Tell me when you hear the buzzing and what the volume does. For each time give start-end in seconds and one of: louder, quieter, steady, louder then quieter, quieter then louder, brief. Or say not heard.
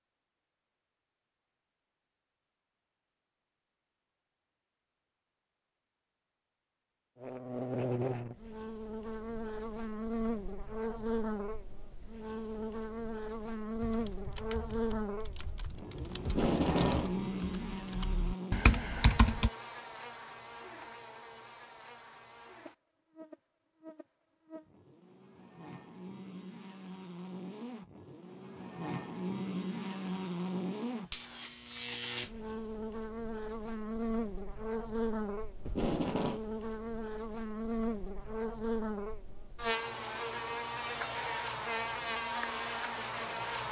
7.2-43.6 quieter then louder.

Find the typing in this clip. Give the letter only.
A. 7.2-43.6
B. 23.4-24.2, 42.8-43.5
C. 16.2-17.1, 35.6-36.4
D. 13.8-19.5
D.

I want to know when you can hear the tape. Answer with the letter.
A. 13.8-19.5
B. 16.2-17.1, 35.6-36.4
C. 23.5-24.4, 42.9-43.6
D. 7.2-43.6
B.